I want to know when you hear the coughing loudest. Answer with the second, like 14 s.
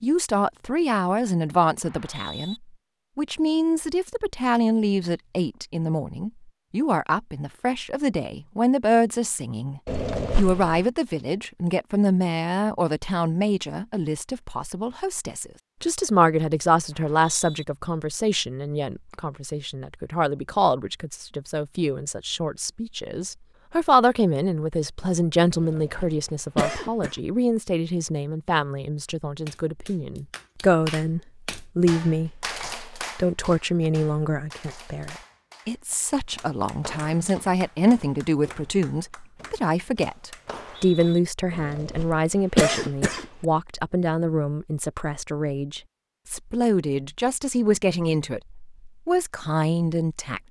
43 s.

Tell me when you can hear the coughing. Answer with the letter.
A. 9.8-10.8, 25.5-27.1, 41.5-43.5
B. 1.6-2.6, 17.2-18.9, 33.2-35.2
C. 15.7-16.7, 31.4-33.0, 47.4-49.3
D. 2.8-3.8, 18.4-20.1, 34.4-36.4
A.